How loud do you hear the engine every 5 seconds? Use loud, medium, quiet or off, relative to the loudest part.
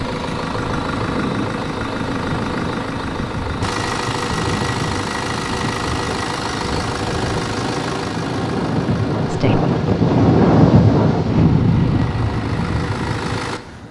loud, loud, medium.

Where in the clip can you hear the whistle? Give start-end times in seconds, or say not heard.
not heard.